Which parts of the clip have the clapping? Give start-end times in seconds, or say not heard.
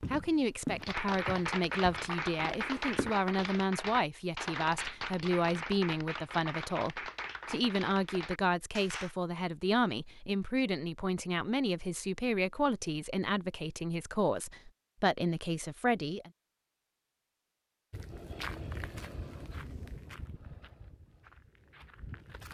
0.8-9.2.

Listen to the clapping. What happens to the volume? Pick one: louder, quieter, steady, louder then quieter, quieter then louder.
quieter.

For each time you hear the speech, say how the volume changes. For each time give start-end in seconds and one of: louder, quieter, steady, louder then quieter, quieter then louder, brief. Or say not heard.
0.0-16.3 steady.